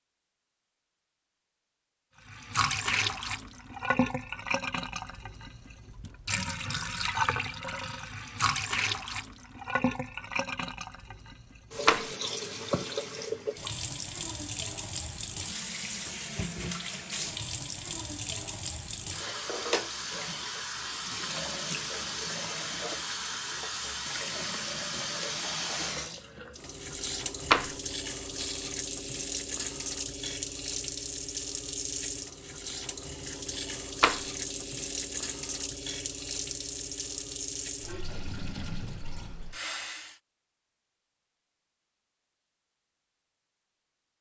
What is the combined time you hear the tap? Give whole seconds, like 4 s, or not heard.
38 s.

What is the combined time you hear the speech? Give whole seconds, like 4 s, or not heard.
not heard.